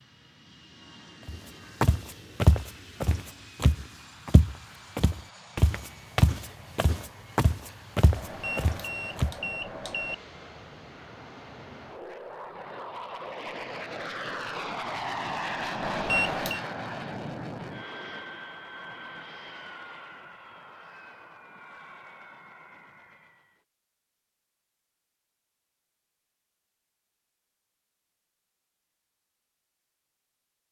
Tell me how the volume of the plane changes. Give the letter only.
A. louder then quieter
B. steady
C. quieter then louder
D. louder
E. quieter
A.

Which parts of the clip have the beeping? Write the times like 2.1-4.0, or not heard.
8.2-10.2, 15.8-16.6.